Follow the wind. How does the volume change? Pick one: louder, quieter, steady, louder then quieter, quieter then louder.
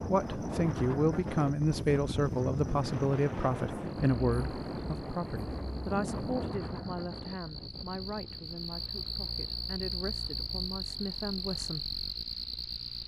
quieter.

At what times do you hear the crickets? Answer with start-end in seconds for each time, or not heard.
0.0-13.0.